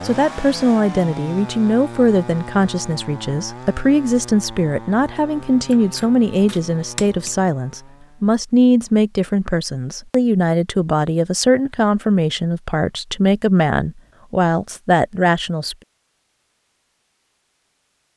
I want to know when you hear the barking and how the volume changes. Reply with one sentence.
You can't hear the barking here.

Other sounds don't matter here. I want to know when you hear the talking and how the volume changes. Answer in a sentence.
You can hear the talking from 0.0 to 15.8 s, at a steady volume.